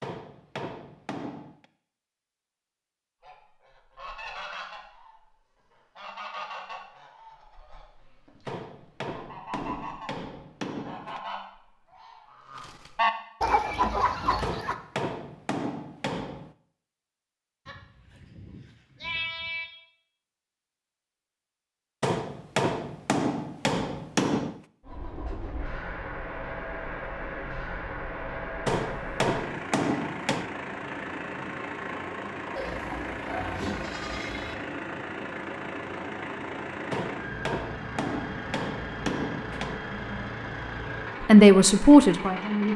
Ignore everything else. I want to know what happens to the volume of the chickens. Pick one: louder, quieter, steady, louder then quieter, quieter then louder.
louder.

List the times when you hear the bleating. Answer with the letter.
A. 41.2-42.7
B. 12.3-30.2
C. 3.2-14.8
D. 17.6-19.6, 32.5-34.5
D.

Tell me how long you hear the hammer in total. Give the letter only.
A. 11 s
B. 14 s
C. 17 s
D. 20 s
B.